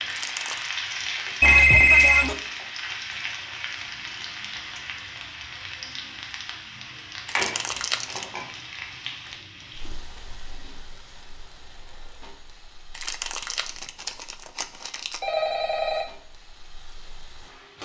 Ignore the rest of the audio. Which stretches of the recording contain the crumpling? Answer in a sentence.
You can hear the crumpling from 0.1 to 0.8 s, from 7.2 to 8.3 s and from 12.9 to 15.2 s.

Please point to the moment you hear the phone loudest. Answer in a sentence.
The volume of the phone peaks at 2 seconds.